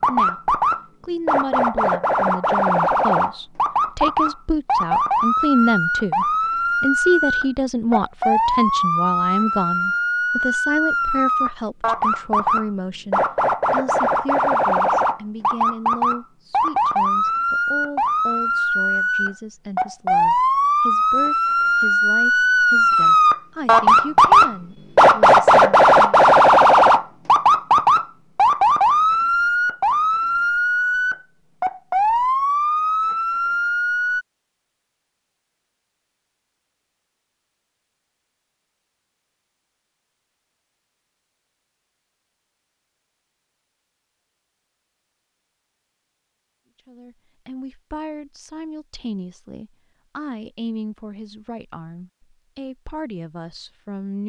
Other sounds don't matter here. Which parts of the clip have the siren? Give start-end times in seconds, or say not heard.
0.0-34.2.